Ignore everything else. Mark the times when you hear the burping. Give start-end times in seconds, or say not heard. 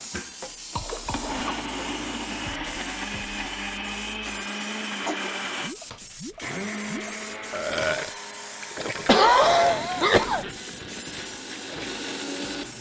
7.5-8.2.